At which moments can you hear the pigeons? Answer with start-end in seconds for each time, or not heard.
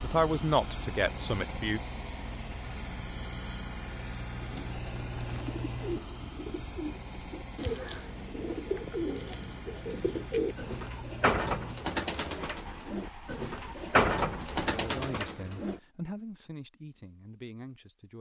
4.3-15.8.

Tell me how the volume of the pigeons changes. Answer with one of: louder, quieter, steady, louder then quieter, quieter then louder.
louder.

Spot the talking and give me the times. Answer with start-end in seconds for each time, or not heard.
0.0-1.8, 14.7-18.1.